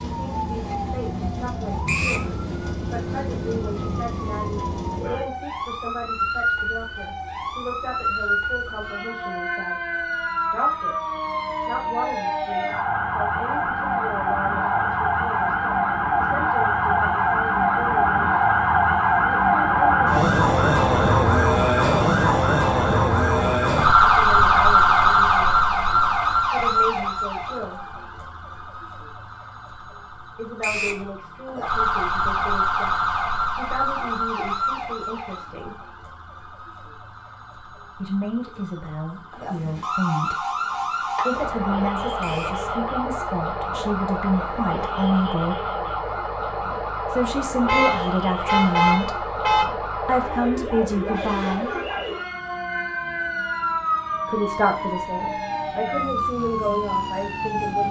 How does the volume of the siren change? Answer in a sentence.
The loudness of the siren goes up, then down.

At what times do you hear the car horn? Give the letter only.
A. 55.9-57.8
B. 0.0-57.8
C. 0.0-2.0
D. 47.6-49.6
D.